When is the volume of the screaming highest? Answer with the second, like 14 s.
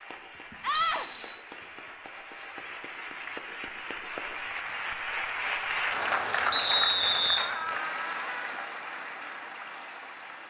1 s.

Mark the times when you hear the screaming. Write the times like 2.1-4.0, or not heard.
0.6-1.1, 7.3-8.6.